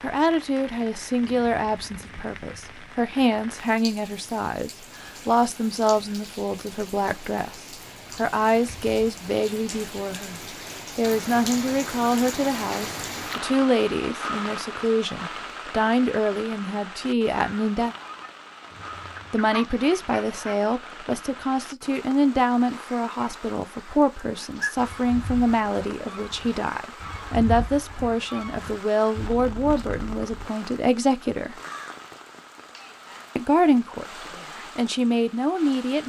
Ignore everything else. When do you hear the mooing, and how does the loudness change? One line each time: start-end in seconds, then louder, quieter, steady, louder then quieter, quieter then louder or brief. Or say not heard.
not heard.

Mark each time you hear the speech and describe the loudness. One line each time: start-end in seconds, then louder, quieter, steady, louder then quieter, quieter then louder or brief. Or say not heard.
0.0-17.9 steady
19.3-31.6 steady
33.4-36.0 brief.